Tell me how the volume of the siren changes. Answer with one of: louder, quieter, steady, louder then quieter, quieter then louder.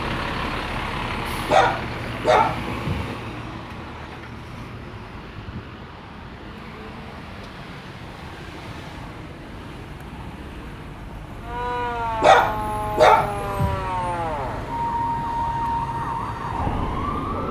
steady.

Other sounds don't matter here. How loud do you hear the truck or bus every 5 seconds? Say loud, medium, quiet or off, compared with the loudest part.
loud, medium, medium, medium.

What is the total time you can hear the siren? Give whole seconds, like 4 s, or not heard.
6 s.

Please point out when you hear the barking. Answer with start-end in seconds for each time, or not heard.
1.4-3.1, 12.2-13.9.